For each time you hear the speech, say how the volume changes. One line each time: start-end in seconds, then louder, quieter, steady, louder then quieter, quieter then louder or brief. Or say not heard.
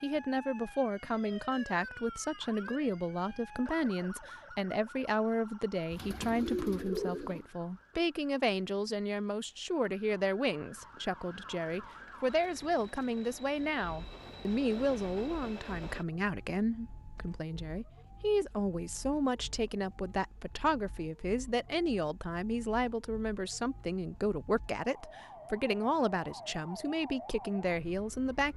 0.0-28.5 steady.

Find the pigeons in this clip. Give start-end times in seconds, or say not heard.
5.9-7.5.